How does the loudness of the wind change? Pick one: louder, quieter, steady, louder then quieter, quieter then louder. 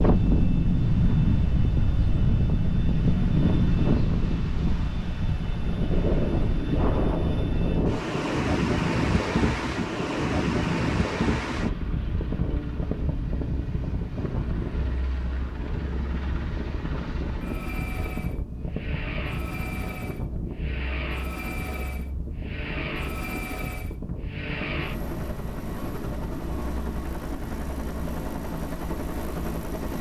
quieter.